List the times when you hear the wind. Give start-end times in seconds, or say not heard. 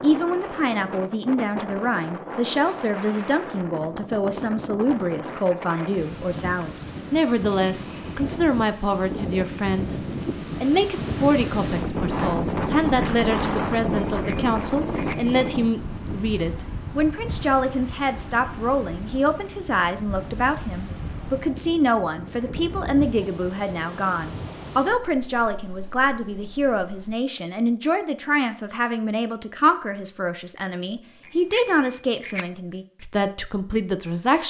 0.0-27.1.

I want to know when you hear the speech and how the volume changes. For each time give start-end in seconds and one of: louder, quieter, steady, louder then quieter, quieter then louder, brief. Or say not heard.
0.0-34.4 steady.